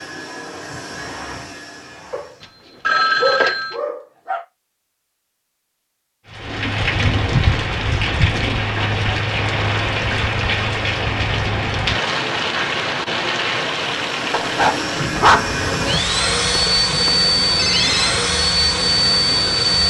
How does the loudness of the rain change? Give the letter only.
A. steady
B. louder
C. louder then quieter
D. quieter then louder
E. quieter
E.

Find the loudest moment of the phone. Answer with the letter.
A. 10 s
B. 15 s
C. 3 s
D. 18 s
C.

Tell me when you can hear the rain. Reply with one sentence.
The rain can be heard from 6.2 to 19.8 s.